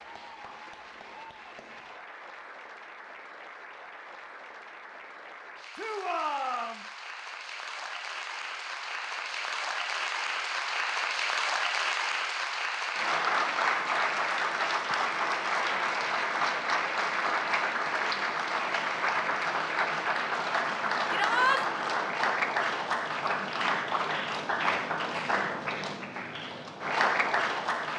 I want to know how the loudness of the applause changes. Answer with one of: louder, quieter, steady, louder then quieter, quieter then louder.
louder.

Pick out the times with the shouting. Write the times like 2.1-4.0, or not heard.
5.8-6.8, 21.1-21.6.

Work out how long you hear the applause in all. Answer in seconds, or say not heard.
28 s.